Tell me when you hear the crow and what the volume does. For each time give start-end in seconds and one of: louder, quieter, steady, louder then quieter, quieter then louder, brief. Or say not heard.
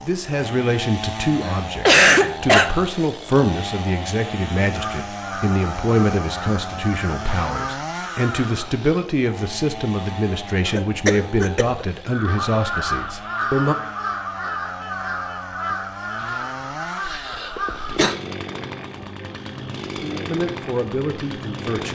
4.7-8.8 steady
12.1-18.0 quieter.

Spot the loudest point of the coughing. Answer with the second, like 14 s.
2 s.